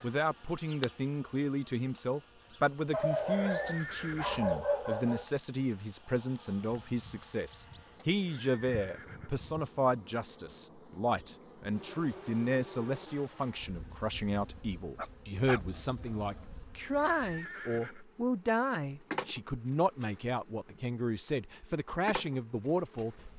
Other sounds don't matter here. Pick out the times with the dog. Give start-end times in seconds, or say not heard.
2.9-5.2, 14.9-16.4.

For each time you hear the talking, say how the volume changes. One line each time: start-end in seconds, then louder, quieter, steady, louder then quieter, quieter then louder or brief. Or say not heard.
0.0-23.3 steady.